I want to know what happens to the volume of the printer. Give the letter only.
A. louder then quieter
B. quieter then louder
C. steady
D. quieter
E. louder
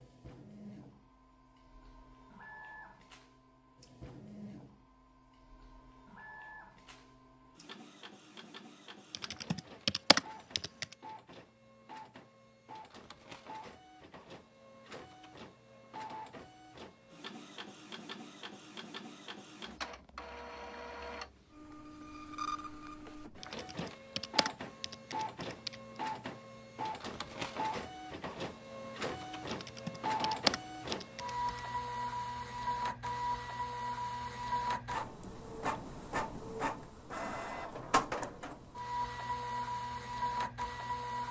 E.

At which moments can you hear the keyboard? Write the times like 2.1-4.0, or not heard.
9.1-10.9, 23.4-25.8, 29.5-31.5.